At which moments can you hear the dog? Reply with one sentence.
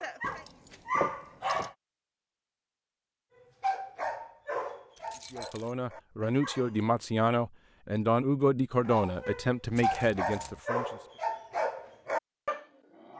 You can hear the dog from 0.0 to 1.7 s, from 3.4 to 6.8 s and from 8.8 to 13.1 s.